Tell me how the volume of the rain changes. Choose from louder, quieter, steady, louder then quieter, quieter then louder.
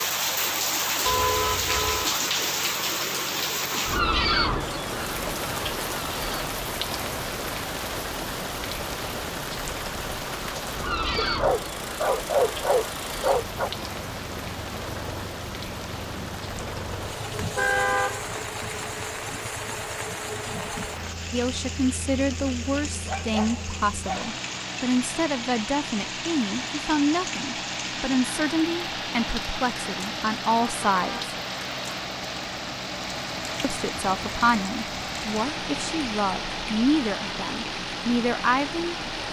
quieter.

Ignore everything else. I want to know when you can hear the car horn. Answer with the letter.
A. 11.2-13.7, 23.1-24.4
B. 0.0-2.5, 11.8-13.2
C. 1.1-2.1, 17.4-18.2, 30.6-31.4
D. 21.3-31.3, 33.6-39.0
C.